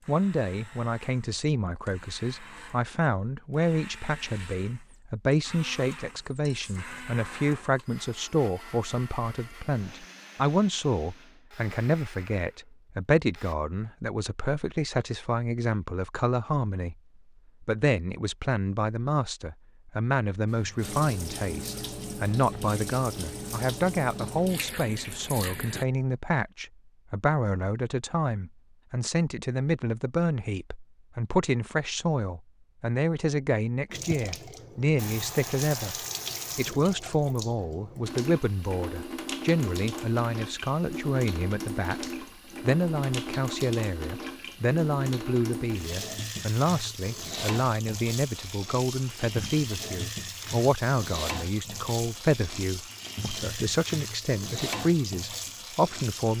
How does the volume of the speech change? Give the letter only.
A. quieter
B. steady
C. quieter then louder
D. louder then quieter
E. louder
B.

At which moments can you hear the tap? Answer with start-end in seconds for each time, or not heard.
20.4-25.9, 33.9-56.3.